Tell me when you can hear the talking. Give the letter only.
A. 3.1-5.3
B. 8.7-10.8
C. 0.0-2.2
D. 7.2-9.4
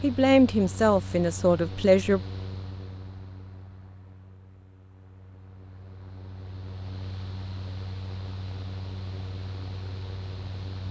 C.